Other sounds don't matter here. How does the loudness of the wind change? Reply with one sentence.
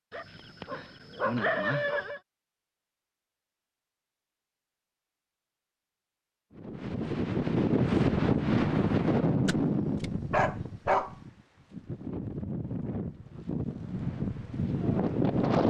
The volume of the wind goes down, then up.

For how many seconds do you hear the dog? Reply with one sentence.
You can hear the dog for 4 seconds altogether.